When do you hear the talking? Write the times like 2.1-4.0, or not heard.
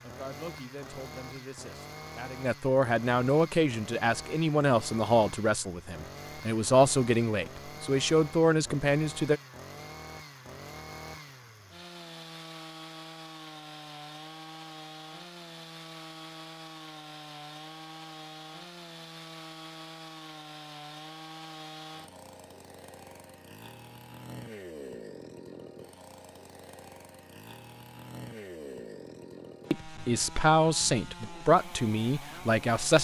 0.0-9.4, 29.7-32.9.